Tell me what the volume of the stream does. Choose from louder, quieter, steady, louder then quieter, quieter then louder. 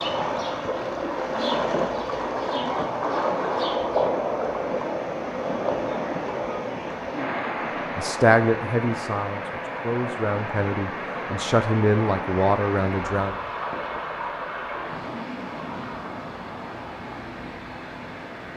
quieter.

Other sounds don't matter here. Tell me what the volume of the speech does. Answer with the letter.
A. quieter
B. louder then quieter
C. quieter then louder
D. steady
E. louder
C.